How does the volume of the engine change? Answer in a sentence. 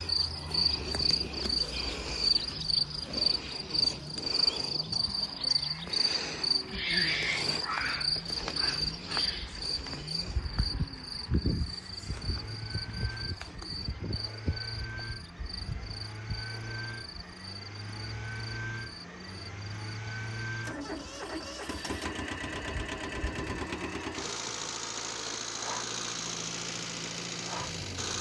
The loudness of the engine goes up.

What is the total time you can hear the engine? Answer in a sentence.
You can hear the engine for 28 seconds altogether.